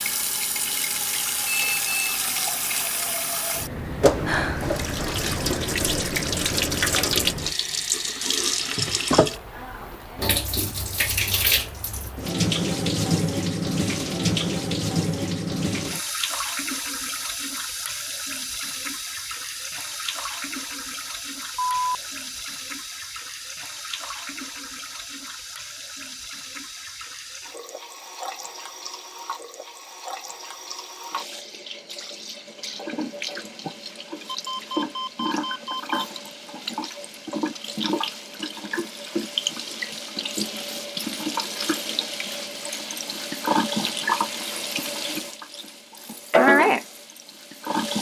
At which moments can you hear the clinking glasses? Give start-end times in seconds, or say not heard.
not heard.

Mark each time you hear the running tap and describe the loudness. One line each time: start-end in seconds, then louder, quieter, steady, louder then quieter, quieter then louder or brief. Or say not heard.
0.0-47.9 quieter then louder.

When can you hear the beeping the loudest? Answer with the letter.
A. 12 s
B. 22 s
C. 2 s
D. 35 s
B.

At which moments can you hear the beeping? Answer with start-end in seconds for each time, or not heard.
1.4-2.2, 21.6-22.4, 34.2-36.2.